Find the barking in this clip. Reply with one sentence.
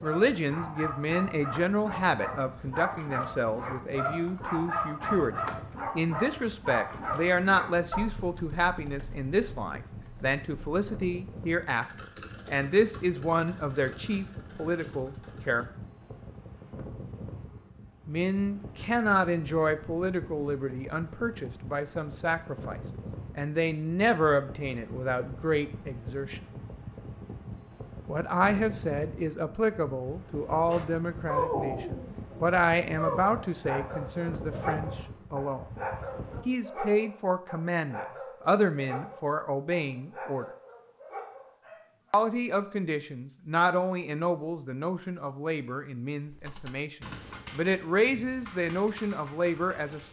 The barking can be heard from 0.0 to 8.1 s and from 30.5 to 42.2 s.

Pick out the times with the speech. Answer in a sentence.
The speech can be heard from 0.0 to 15.7 s, from 18.1 to 26.4 s, from 28.1 to 35.6 s, from 36.5 to 40.5 s and from 42.1 to 50.0 s.